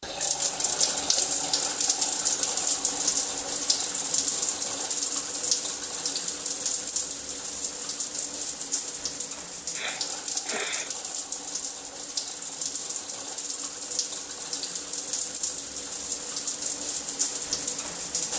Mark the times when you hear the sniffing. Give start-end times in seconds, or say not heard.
9.7-10.9.